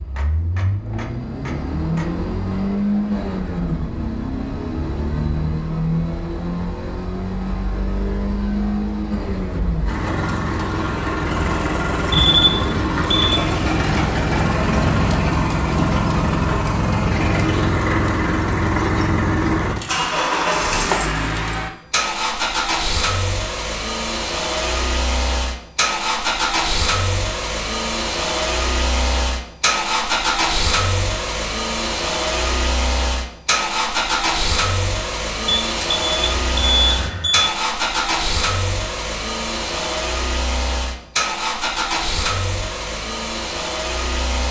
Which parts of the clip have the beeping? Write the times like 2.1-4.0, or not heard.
12.1-13.4, 35.5-37.5.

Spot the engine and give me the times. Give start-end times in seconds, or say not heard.
0.0-44.4.